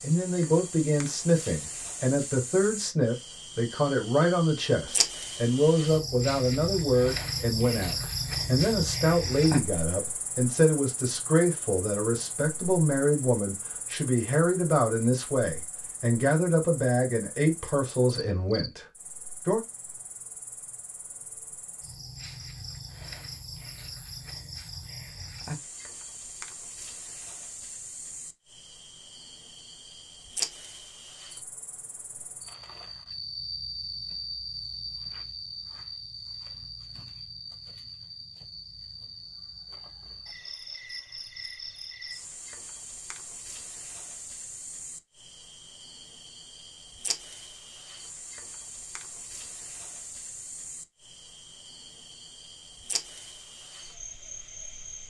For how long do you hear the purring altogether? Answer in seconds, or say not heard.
not heard.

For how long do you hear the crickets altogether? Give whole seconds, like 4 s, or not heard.
55 s.